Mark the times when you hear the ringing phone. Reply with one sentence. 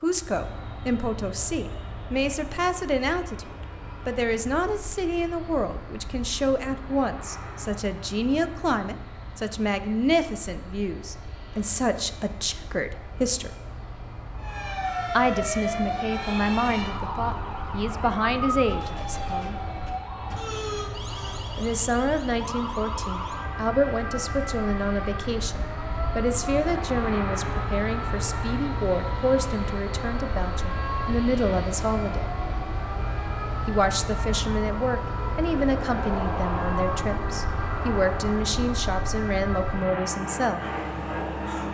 The ringing phone can't be heard in this clip.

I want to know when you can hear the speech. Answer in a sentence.
You can hear the speech from 0.0 to 13.6 s, from 15.1 to 19.6 s, from 21.6 to 32.3 s and from 33.6 to 40.6 s.